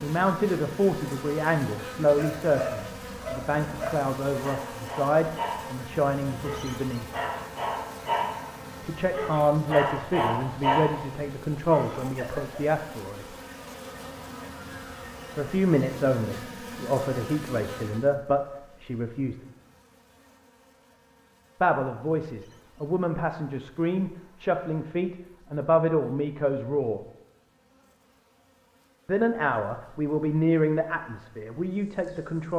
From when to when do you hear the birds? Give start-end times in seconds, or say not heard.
not heard.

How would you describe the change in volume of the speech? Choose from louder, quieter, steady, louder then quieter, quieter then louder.
steady.